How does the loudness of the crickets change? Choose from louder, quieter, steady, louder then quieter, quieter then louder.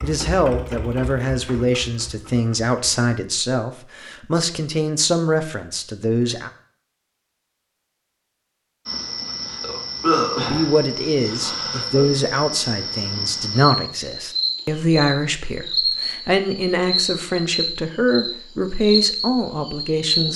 steady.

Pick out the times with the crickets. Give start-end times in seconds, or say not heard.
8.8-20.3.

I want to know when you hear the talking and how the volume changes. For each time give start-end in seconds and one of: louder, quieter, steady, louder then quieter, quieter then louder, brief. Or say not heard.
0.0-6.5 steady
10.4-20.3 steady.